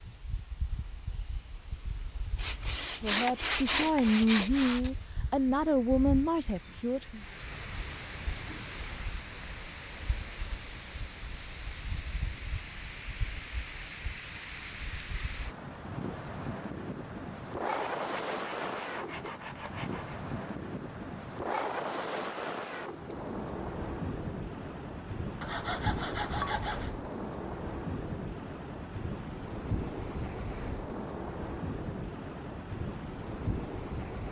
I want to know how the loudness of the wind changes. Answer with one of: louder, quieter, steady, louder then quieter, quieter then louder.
louder.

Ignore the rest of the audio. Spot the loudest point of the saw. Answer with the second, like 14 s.
4 s.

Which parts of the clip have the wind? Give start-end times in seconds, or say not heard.
0.0-34.2.